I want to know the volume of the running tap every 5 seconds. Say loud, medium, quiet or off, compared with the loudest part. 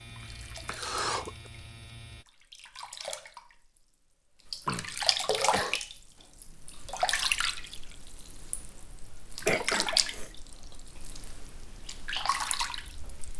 medium, loud, medium.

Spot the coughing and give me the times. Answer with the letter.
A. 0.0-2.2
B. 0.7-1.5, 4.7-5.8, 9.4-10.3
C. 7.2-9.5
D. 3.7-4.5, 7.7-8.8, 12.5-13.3
B.